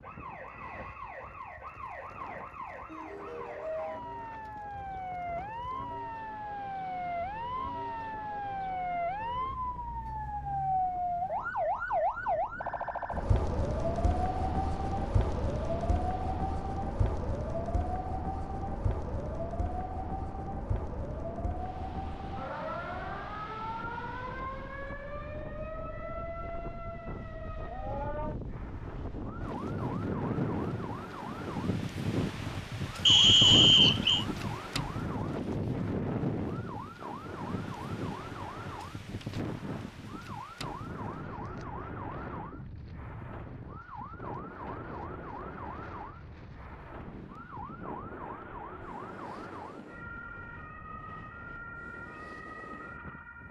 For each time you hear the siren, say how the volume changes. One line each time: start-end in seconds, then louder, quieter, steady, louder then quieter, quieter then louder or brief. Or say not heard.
0.0-53.4 quieter.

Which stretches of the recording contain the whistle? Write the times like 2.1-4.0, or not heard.
33.0-34.2.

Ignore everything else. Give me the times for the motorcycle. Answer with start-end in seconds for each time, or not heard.
not heard.